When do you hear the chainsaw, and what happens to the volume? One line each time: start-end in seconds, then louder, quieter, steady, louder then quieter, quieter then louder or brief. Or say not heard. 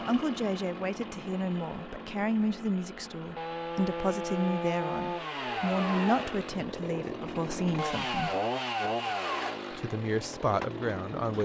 0.0-11.3 louder.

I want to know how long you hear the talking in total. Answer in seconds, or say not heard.
10 s.